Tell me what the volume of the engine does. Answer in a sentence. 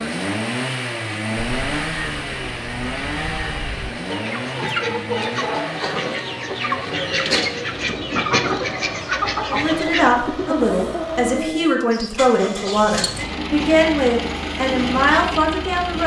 The loudness of the engine goes down, then up.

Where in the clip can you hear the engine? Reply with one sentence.
You can hear the engine from 0.0 to 16.0 s.